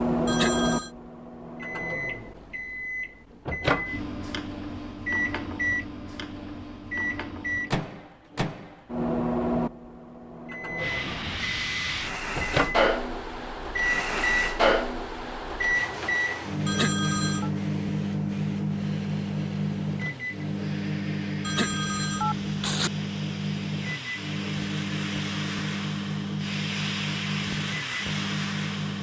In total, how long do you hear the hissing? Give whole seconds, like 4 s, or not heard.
18 s.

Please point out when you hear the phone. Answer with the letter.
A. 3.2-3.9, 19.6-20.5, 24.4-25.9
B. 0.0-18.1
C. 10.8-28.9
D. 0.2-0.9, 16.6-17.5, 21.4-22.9
D.